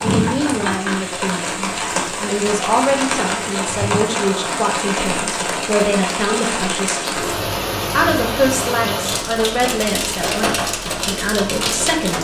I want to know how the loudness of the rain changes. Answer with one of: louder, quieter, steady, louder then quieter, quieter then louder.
steady.